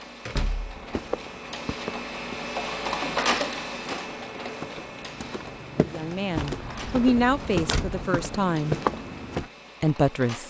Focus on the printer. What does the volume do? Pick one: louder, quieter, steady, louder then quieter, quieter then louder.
louder then quieter.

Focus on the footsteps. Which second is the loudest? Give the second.
9 s.